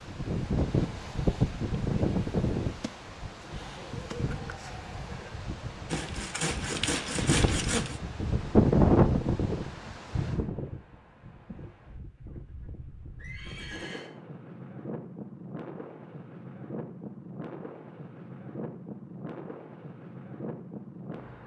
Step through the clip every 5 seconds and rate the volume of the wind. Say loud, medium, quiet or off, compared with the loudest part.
loud, loud, quiet, quiet, quiet.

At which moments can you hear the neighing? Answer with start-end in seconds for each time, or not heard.
3.4-5.4, 13.2-14.1.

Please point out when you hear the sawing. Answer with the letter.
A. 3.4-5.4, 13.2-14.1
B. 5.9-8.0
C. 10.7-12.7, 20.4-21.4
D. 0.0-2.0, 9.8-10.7
B.